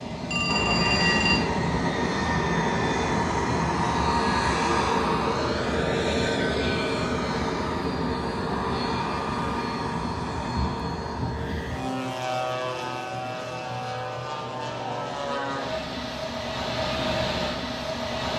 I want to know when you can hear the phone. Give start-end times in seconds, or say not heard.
0.3-1.4.